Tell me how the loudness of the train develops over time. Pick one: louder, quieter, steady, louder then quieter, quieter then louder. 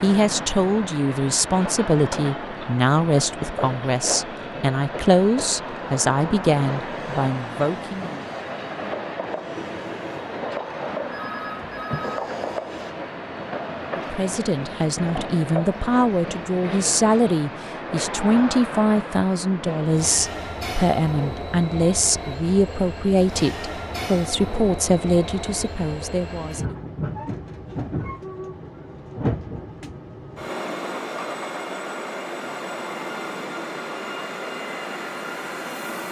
steady.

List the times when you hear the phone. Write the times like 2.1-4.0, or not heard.
11.1-12.2.